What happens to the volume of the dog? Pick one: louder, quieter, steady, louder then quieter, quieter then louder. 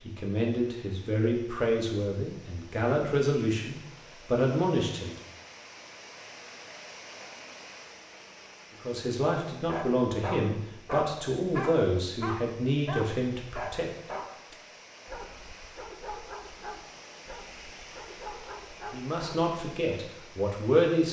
quieter.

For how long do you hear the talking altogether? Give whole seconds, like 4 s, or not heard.
12 s.